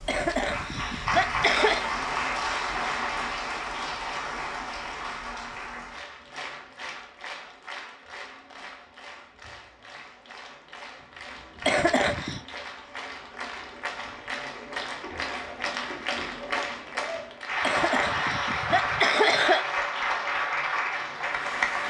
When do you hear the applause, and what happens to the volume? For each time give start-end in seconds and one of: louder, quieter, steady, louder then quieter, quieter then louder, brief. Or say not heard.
0.0-21.8 quieter then louder.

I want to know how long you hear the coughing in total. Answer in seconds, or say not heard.
5 s.